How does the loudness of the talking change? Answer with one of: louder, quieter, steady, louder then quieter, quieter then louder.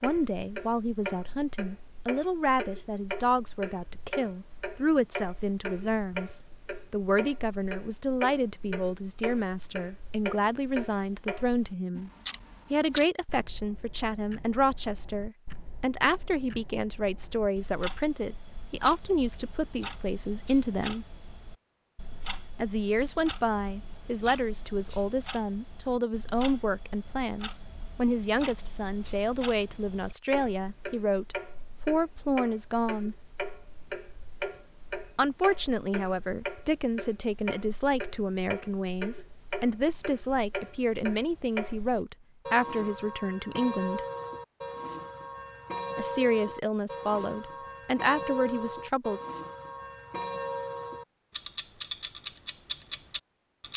steady.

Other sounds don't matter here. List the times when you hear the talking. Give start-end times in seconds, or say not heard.
0.0-12.1, 12.7-21.1, 22.6-33.1, 35.1-44.0, 46.0-49.2.